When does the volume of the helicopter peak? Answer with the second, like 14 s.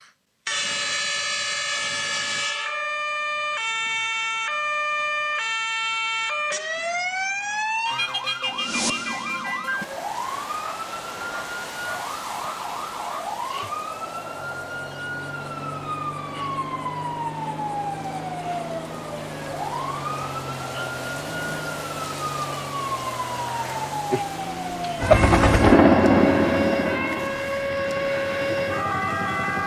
26 s.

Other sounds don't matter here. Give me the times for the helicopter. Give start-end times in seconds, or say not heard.
24.9-29.6.